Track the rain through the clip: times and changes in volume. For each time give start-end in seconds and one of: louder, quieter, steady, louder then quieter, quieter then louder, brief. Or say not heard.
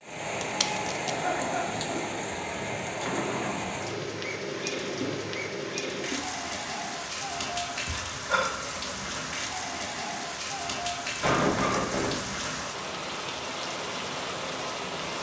0.0-15.1 steady.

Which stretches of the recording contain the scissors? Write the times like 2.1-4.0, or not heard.
0.4-1.1.